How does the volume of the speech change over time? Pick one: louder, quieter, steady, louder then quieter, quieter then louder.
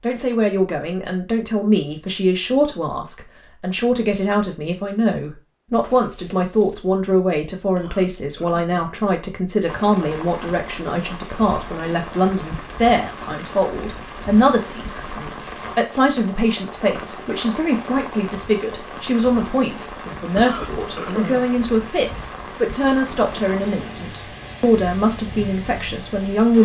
steady.